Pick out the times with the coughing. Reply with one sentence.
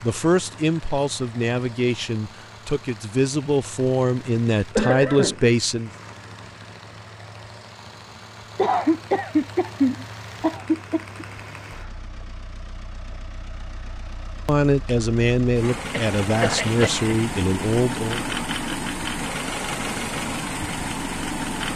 The coughing can be heard from 4.8 to 5.3 s, from 8.6 to 11.2 s and from 15.8 to 17.1 s.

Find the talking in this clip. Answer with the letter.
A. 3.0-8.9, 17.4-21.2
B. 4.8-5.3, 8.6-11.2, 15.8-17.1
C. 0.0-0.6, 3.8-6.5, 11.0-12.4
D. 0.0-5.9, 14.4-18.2
D.